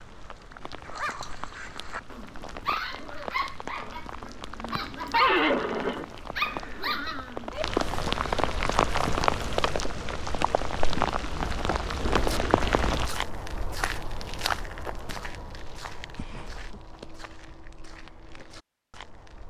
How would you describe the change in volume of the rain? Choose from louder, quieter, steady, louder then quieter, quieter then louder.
louder.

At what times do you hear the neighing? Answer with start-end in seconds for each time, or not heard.
5.1-6.5, 16.1-16.8.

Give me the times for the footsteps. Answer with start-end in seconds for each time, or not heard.
12.0-19.4.